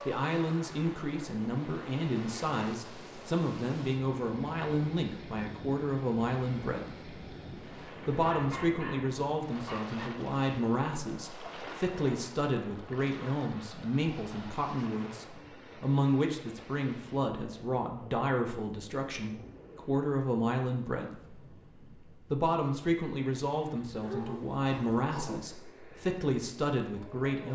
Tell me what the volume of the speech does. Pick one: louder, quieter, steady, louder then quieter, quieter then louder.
steady.